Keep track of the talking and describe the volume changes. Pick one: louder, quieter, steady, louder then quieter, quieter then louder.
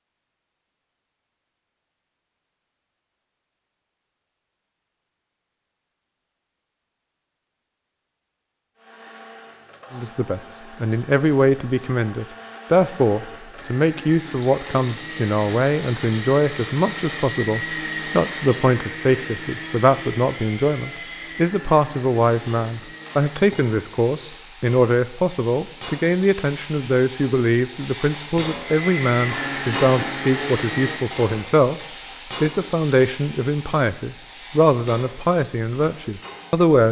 steady.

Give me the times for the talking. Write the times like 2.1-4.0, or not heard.
9.9-31.8, 32.4-36.8.